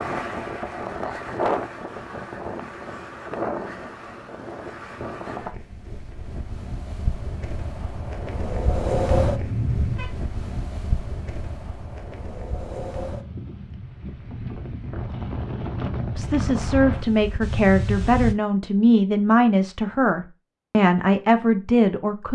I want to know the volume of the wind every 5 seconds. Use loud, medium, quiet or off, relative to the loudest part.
loud, loud, medium, loud, off.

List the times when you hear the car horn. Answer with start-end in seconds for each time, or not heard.
9.1-10.1.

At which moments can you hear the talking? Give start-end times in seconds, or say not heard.
16.1-22.3.